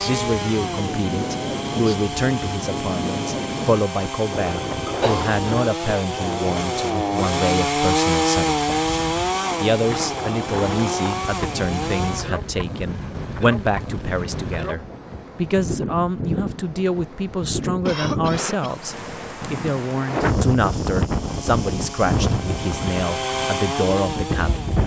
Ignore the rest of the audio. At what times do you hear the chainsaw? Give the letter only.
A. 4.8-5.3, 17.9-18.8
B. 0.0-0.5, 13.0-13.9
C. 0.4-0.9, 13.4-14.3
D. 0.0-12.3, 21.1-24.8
D.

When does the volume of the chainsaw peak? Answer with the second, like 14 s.
8 s.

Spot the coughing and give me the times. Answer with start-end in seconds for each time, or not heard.
4.8-5.3, 17.9-18.8.